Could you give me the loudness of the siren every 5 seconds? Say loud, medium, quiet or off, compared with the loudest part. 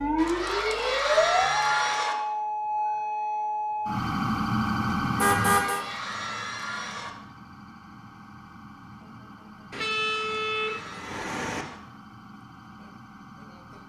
loud, medium, quiet.